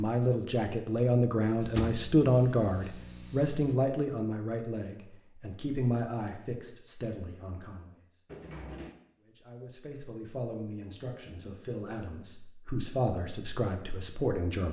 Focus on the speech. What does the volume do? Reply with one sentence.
The volume of the speech goes down, then up.